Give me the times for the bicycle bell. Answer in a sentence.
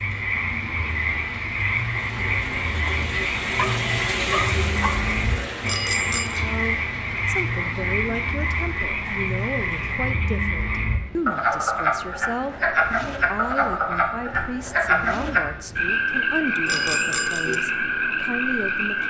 You can hear the bicycle bell from 5.7 to 6.4 s and from 16.6 to 17.6 s.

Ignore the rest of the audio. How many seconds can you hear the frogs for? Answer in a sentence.
The frogs can be heard for 19 seconds in total.